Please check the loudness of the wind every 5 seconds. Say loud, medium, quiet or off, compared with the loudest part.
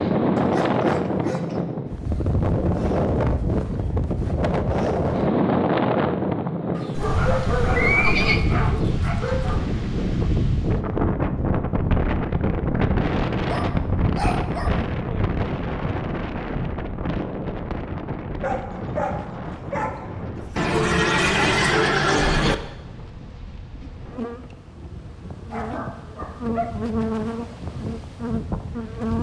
loud, loud, loud, medium, quiet, quiet.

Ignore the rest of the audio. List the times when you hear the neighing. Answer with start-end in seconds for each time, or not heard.
7.0-8.4, 20.6-22.6.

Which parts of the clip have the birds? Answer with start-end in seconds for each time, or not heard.
not heard.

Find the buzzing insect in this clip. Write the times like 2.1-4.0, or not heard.
22.9-29.1.